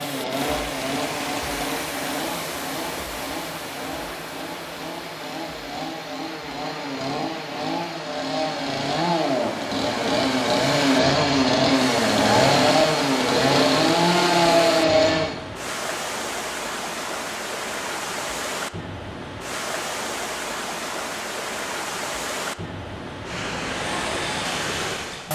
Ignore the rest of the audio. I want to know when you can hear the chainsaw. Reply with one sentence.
You can hear the chainsaw from 0.0 to 15.3 s and from 23.6 to 25.2 s.